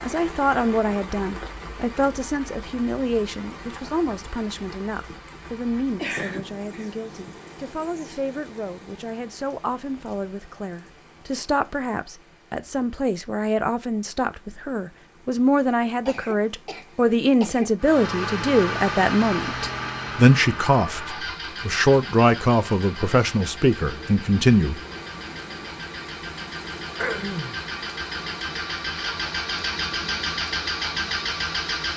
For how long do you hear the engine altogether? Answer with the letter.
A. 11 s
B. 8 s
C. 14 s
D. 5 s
C.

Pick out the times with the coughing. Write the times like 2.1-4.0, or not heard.
6.0-7.3, 16.1-17.7, 27.0-27.6.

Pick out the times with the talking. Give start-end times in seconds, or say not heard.
0.0-24.8.